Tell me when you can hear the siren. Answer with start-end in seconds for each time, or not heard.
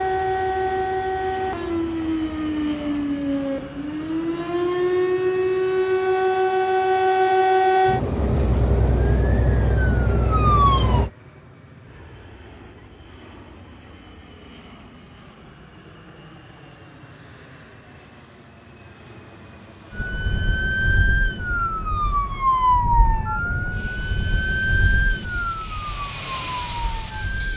0.0-11.1, 19.9-27.5.